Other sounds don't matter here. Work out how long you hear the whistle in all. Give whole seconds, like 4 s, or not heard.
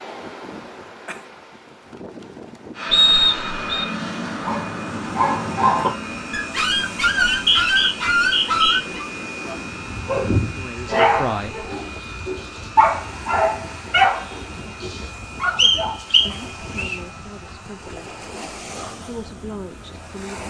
4 s.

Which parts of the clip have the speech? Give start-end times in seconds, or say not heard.
10.3-11.7, 15.6-17.9, 19.1-20.4.